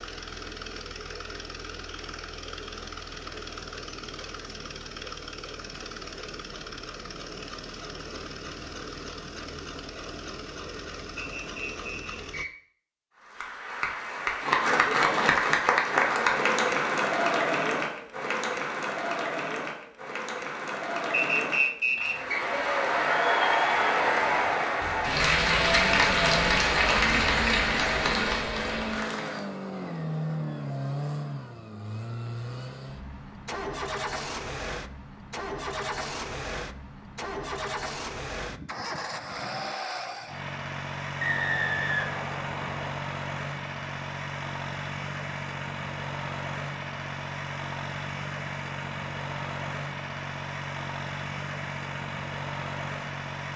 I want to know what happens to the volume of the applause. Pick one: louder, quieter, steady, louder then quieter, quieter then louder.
quieter then louder.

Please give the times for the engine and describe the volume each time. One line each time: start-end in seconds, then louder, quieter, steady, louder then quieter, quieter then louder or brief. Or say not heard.
0.0-12.4 steady
24.8-53.5 steady.